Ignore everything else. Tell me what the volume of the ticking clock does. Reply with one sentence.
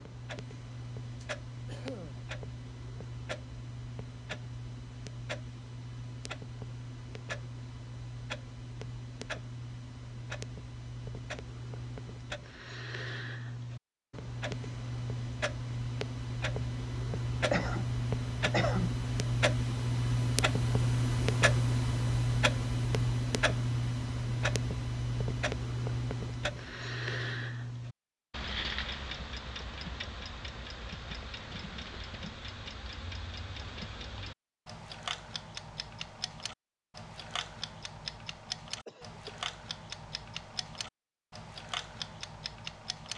The loudness of the ticking clock goes up, then down.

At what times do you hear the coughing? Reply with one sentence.
You can hear the coughing from 1.2 to 2.2 s, from 17.5 to 18.9 s and from 38.9 to 39.5 s.